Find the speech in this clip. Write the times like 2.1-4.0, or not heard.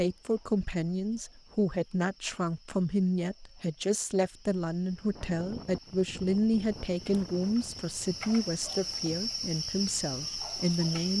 0.0-11.1.